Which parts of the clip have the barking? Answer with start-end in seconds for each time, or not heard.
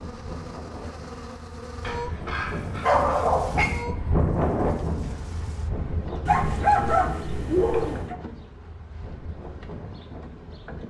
1.8-3.7, 6.2-8.2.